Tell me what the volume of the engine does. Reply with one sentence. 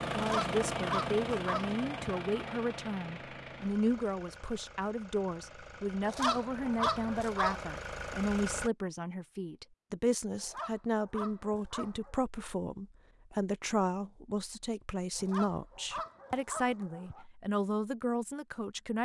The volume of the engine goes down, then up.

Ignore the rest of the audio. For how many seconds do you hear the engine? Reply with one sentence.
You can hear the engine for 9 seconds altogether.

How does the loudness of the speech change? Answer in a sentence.
The volume of the speech stays about the same.